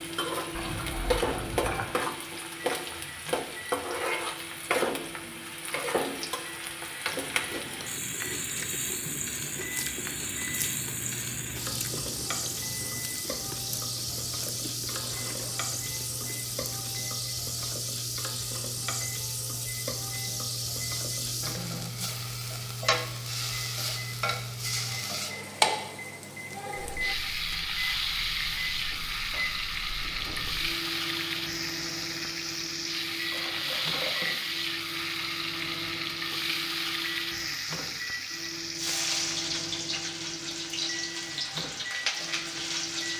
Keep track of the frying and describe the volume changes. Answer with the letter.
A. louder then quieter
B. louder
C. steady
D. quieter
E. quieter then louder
C.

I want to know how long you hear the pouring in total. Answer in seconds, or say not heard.
3 s.